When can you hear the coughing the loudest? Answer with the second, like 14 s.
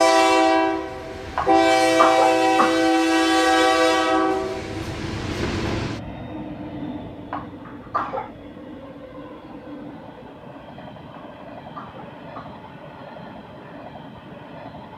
2 s.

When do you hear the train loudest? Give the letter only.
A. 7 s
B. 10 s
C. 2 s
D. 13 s
C.